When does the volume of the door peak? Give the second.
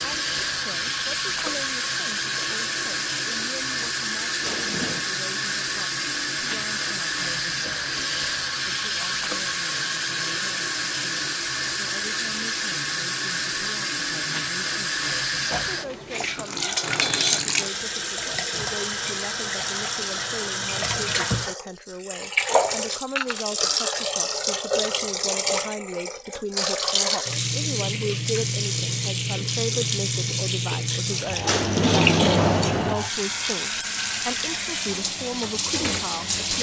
32 s.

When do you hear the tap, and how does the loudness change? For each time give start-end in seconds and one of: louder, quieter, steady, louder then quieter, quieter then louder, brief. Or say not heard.
0.0-36.5 steady.